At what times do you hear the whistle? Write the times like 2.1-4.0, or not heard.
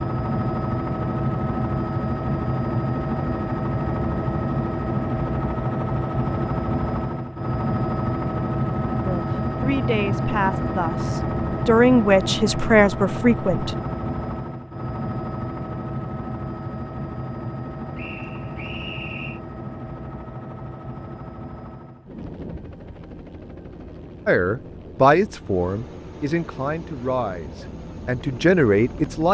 17.9-19.4.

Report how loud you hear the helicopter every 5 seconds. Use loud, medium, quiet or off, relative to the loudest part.
loud, loud, loud, medium, quiet, quiet.